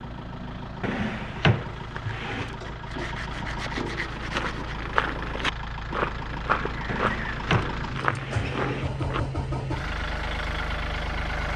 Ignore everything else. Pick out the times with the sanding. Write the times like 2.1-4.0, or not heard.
1.9-4.8.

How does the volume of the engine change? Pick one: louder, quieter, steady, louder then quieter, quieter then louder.
louder.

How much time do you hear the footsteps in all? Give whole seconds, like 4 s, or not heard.
5 s.